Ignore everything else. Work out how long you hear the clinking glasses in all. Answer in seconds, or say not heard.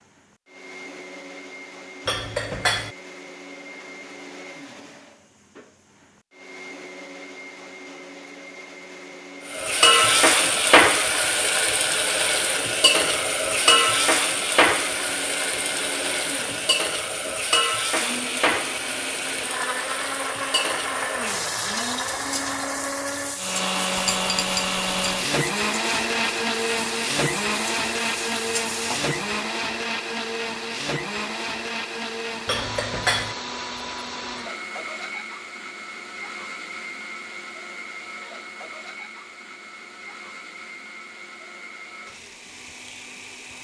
3 s.